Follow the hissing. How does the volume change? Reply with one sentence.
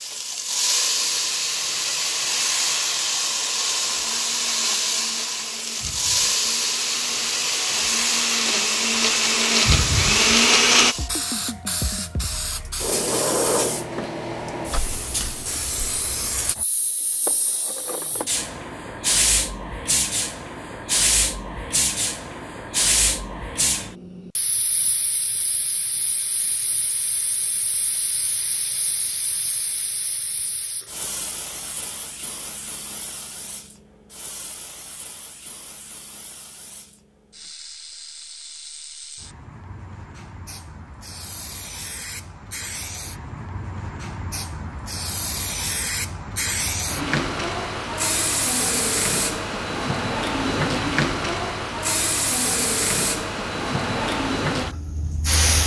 The volume of the hissing goes down, then up.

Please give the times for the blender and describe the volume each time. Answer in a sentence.
The blender can be heard from 3.5 to 10.9 s, getting louder.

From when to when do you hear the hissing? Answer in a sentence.
You can hear the hissing from 0.0 to 55.6 s.